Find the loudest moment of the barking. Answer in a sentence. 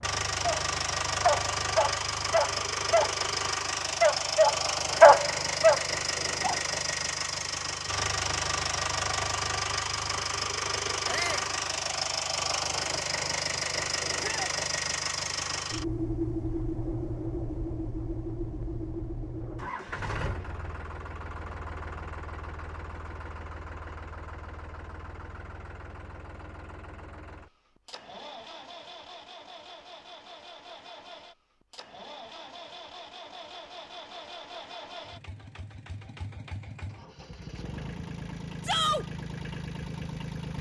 The volume of the barking peaks at 5 seconds.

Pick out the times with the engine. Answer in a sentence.
The engine can be heard from 0.0 to 40.5 s.